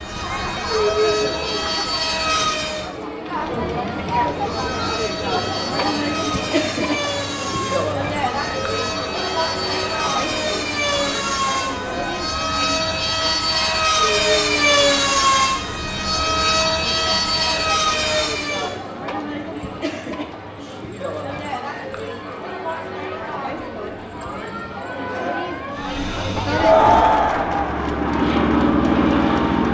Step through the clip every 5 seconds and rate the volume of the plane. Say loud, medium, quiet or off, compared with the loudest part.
medium, medium, loud, loud, off, loud.